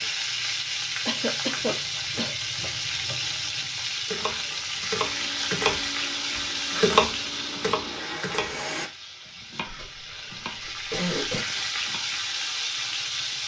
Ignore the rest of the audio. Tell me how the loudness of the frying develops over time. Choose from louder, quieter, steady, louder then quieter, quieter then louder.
quieter then louder.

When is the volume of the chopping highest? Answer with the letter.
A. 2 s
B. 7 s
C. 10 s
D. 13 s
B.